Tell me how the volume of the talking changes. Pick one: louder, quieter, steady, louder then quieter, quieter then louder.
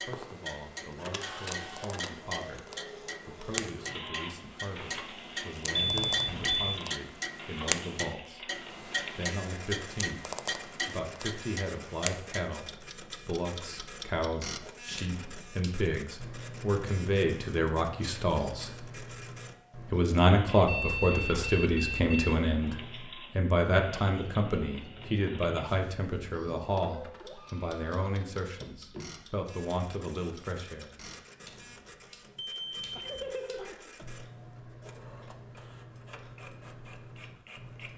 louder then quieter.